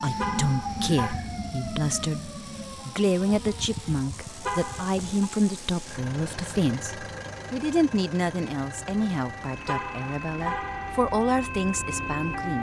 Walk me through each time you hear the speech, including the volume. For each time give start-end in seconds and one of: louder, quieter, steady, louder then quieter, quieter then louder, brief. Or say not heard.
0.0-12.5 steady.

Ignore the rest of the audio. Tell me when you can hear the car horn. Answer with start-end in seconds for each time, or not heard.
0.1-1.1, 4.4-5.3, 9.7-10.9.